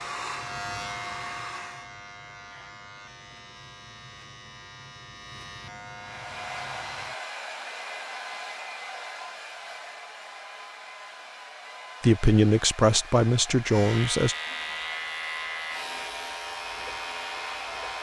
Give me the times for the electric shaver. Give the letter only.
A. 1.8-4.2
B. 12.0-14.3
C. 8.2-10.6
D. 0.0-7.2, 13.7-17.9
D.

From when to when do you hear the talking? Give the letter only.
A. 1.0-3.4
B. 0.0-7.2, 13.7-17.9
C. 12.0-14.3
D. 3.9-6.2
C.